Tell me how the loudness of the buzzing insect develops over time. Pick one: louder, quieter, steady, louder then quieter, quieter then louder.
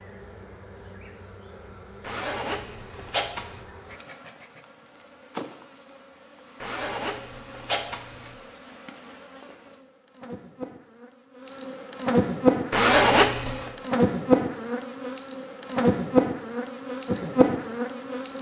louder.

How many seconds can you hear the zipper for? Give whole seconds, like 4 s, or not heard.
4 s.